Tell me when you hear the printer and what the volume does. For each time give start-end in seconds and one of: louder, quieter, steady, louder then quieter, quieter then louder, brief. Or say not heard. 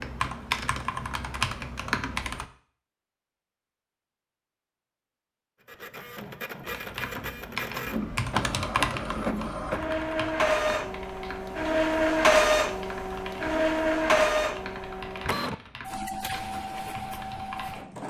5.7-18.0 louder then quieter.